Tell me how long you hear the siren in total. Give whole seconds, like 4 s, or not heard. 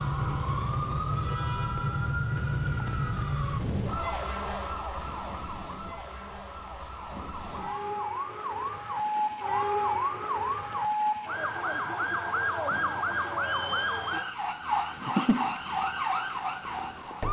17 s.